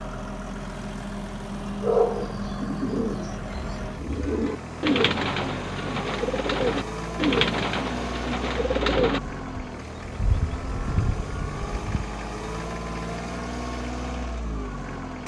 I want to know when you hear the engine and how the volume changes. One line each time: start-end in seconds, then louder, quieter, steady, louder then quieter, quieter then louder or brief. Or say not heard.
0.0-15.2 steady.